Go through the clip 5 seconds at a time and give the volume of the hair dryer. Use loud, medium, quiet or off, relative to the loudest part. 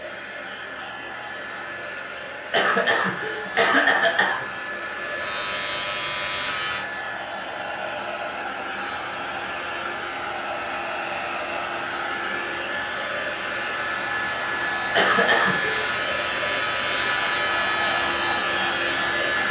medium, medium, loud, loud.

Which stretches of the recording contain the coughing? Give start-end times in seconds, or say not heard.
2.5-4.5, 14.9-15.8.